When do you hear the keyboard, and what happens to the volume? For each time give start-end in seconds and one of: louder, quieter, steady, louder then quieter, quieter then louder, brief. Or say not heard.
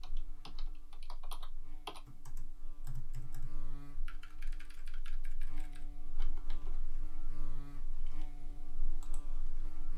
0.0-9.8 quieter.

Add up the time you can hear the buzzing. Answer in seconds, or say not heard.
10 s.